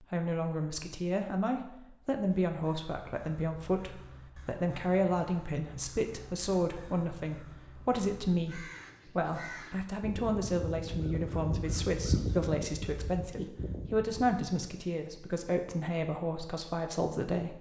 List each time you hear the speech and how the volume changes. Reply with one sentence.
You can hear the speech from 0.0 to 17.5 s, at a steady volume.